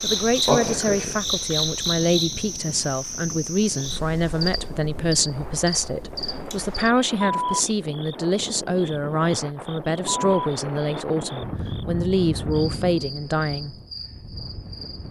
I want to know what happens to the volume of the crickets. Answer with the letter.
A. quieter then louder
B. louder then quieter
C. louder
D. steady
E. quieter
E.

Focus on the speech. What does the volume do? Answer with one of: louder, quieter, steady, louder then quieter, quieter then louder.
steady.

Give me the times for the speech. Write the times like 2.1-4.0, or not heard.
0.0-13.8.